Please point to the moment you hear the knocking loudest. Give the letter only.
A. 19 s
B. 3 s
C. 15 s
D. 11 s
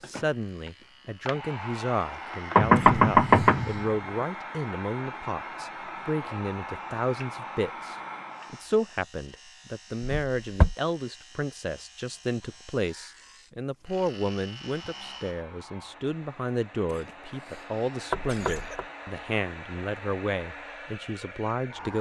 B.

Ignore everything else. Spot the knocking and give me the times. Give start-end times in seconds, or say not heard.
2.5-3.9, 10.0-10.8, 18.1-18.9.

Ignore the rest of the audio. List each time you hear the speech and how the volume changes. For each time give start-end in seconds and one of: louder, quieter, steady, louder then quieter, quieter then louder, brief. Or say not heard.
0.0-21.9 steady.